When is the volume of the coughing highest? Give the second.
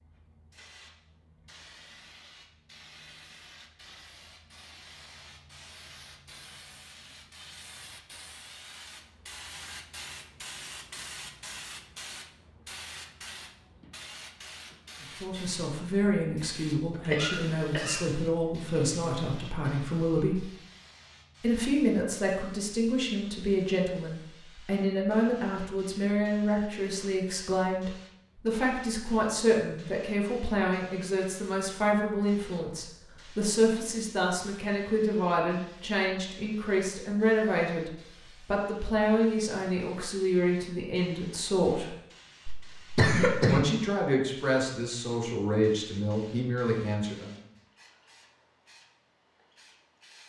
43 s.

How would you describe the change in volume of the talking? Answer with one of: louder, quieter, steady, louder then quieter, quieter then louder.
steady.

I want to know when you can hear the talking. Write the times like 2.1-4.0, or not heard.
15.0-20.4, 21.4-42.0, 43.5-47.4.